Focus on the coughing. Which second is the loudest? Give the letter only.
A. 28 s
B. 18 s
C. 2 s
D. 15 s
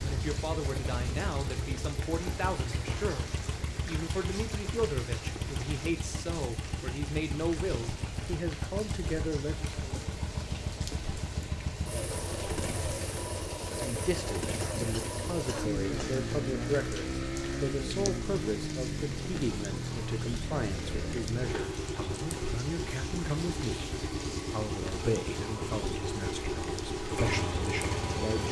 D.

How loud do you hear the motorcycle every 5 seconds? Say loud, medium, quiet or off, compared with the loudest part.
medium, medium, loud, loud, loud, loud.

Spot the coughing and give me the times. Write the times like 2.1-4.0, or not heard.
14.6-16.1.